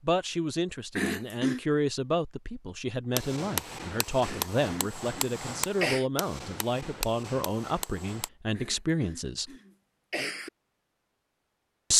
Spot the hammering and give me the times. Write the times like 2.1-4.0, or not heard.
3.1-8.3.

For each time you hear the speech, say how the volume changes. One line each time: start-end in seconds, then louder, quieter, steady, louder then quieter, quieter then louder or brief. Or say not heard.
0.0-9.5 steady.